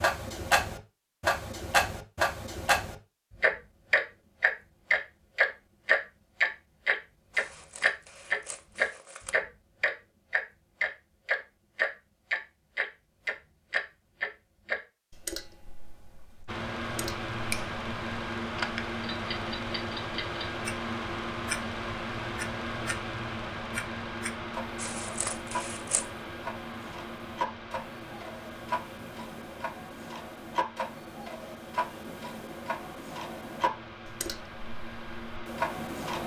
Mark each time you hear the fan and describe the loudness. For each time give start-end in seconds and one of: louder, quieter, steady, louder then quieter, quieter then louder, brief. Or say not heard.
16.4-36.2 quieter.